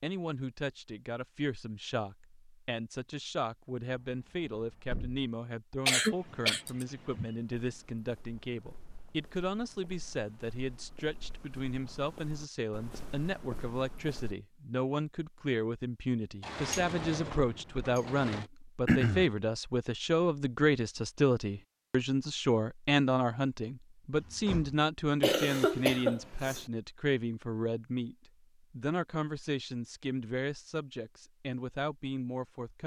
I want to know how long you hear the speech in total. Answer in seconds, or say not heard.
33 s.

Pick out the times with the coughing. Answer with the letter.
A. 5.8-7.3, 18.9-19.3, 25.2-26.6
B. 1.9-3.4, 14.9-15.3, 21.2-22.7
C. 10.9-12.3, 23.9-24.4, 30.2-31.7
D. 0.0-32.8
A.